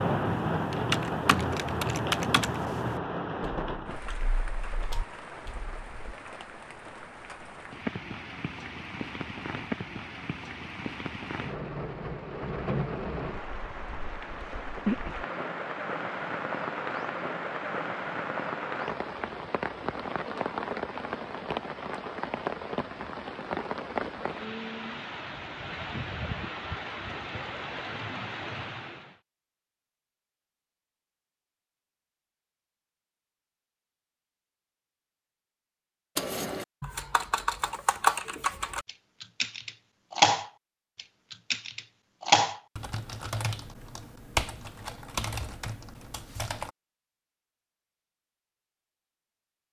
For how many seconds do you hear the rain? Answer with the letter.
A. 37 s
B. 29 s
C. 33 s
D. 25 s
B.